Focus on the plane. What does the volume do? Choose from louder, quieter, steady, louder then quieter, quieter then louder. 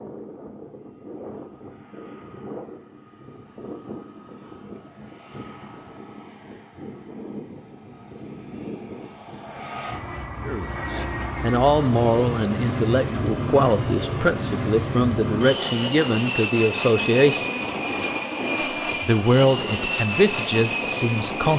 louder.